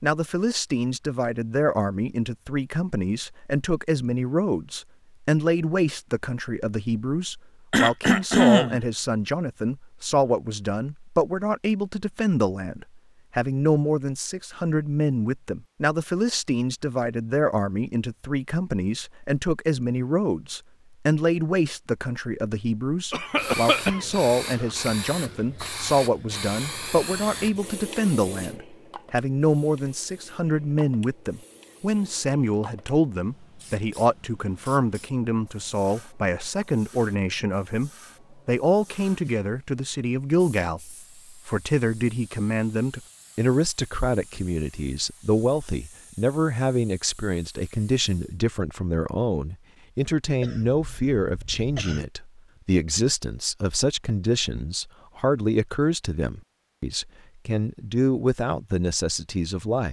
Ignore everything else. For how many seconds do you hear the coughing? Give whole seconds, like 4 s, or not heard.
4 s.